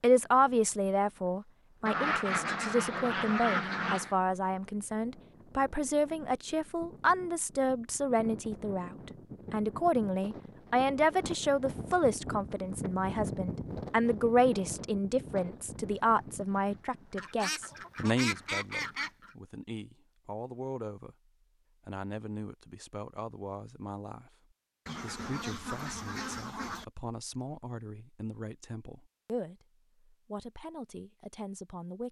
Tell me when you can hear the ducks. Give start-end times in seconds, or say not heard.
1.9-4.2, 17.1-19.3, 24.9-26.9.